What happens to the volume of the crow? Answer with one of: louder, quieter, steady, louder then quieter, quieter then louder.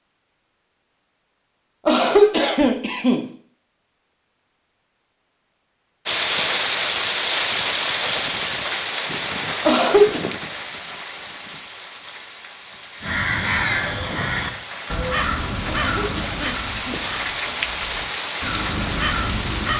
quieter then louder.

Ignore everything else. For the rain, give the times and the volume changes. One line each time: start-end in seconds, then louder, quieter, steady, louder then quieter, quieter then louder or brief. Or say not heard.
6.0-19.7 quieter then louder.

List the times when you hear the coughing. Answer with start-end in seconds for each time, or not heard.
1.9-3.2, 9.7-10.2, 15.7-17.6.